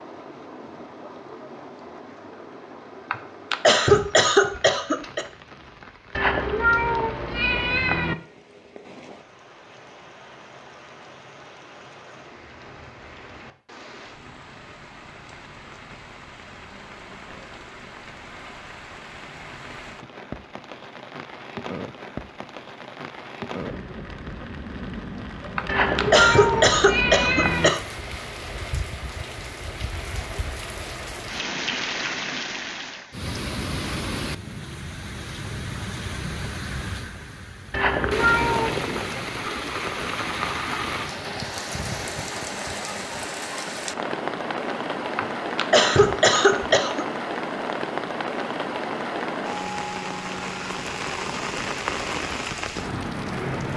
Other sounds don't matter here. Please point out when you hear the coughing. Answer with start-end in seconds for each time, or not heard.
3.1-5.2, 25.6-27.8, 45.1-47.0.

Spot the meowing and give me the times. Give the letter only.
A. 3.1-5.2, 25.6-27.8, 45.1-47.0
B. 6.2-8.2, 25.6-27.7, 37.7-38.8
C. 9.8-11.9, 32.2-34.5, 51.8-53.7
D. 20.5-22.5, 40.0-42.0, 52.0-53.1
B.